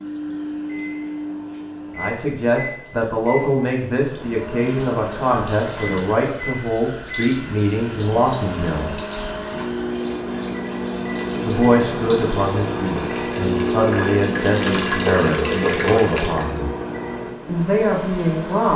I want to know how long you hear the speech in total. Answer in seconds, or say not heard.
14 s.